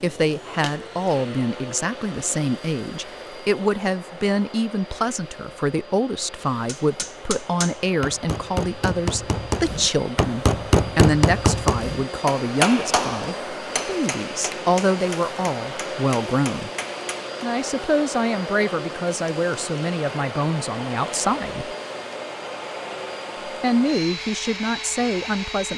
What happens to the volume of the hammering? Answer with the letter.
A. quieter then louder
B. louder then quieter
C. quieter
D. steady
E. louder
B.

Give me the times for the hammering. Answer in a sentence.
You can hear the hammering from 6.7 to 17.3 s.